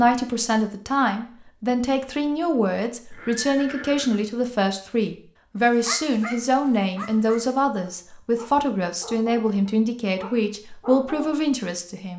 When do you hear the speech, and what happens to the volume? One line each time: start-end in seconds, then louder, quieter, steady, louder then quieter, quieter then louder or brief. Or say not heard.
0.0-12.1 steady.